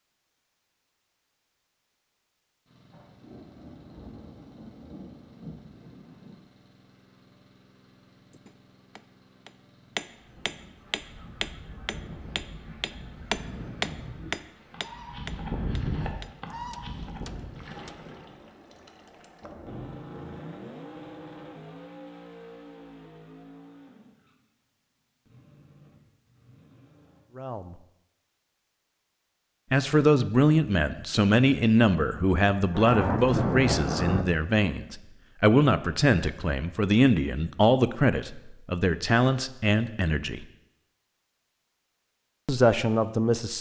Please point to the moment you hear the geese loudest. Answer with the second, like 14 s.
16 s.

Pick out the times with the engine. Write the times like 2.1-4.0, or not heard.
2.6-27.2.